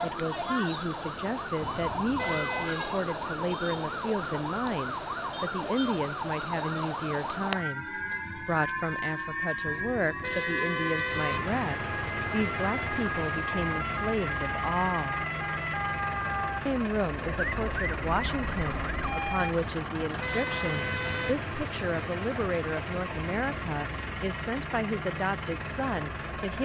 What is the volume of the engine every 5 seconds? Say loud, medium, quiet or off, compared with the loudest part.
off, off, loud, loud, loud, loud.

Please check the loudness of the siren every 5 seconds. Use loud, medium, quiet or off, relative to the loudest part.
loud, loud, loud, loud, off, off.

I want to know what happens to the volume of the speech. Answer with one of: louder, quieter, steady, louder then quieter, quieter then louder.
steady.